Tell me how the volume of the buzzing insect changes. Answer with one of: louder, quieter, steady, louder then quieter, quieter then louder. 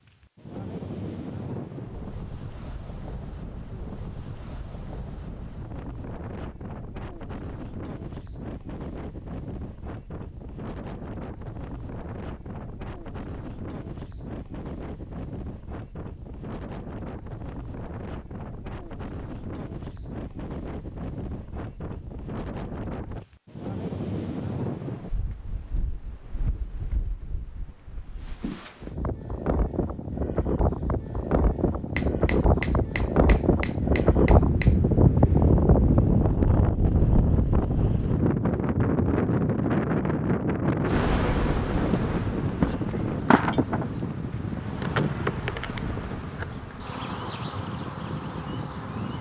quieter.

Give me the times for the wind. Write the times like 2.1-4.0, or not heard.
0.1-49.1.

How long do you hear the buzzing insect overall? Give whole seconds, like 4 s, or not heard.
8 s.